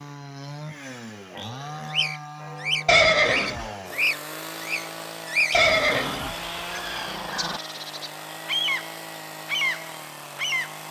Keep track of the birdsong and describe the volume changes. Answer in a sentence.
The loudness of the birdsong goes down, then up.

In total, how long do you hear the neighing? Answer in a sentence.
The neighing can be heard for 2 seconds in total.